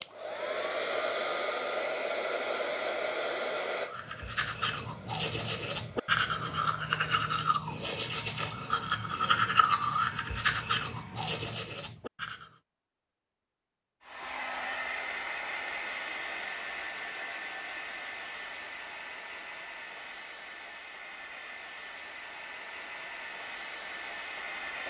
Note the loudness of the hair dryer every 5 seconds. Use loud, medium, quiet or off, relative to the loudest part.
loud, quiet, medium, medium, medium.